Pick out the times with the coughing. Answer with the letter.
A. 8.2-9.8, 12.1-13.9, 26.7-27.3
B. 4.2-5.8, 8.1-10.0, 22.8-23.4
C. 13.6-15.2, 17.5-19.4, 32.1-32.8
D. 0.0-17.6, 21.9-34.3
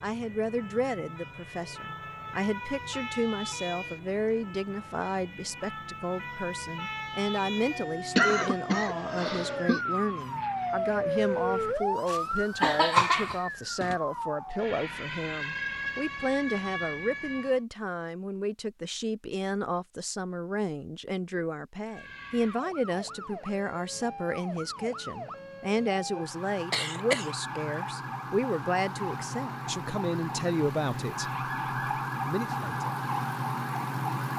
A.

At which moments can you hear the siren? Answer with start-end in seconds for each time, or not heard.
0.0-17.6, 21.9-34.3.